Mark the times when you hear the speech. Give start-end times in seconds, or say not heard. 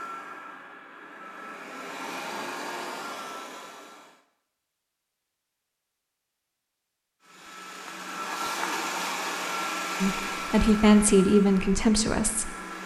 10.0-12.6.